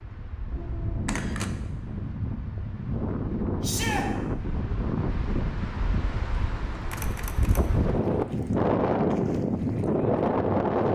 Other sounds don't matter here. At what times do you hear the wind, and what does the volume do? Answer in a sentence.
You can hear the wind from 0.0 to 10.9 s, getting louder.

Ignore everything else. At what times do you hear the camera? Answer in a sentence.
The camera can be heard from 0.5 to 1.6 s and from 6.9 to 7.8 s.